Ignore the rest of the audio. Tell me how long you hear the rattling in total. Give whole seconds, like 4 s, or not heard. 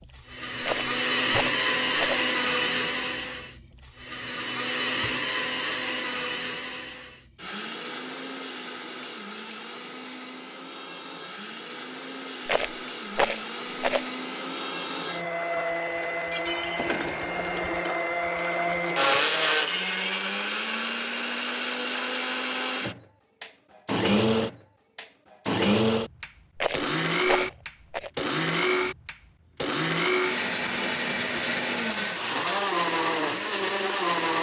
5 s.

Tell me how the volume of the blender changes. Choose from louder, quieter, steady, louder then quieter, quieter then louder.
quieter then louder.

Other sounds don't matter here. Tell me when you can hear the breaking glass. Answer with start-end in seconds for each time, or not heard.
16.3-17.2.